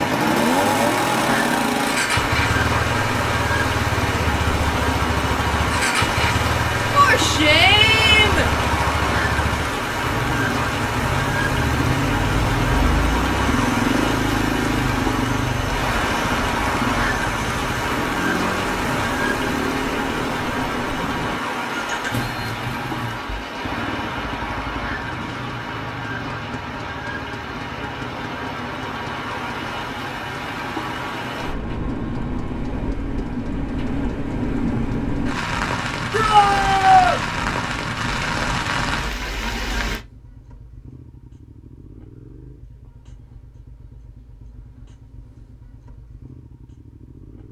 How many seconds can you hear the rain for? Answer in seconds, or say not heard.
40 s.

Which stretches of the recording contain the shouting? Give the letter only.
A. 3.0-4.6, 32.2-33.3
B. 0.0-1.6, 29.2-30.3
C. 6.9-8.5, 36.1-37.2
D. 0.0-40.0
C.